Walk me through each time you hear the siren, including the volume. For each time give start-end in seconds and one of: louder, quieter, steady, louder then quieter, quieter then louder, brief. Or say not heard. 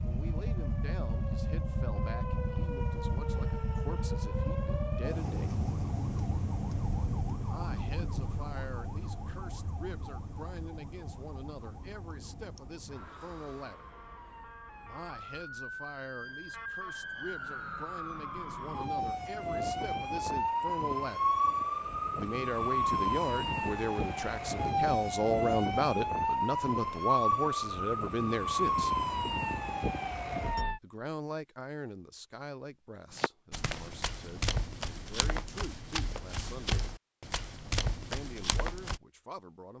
0.0-30.8 quieter then louder.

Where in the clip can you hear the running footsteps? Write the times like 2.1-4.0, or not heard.
33.1-39.0.